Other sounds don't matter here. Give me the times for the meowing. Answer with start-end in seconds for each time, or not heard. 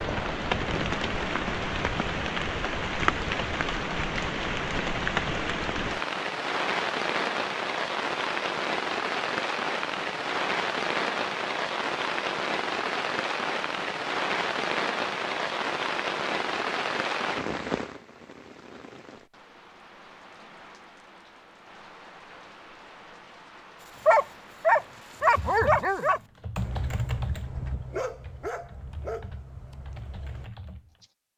not heard.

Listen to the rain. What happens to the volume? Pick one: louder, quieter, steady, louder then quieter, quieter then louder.
quieter.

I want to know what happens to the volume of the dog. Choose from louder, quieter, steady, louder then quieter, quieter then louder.
quieter.